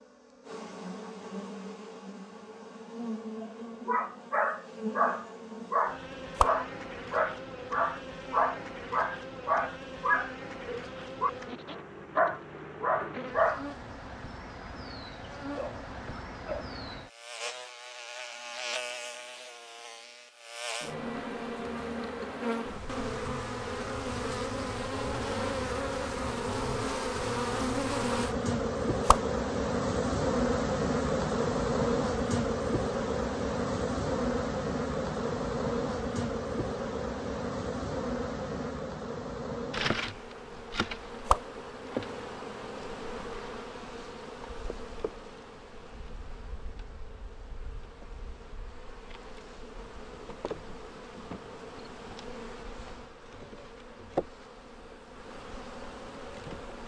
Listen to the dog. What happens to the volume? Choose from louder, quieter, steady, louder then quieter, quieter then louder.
steady.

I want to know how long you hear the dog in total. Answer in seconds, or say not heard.
10 s.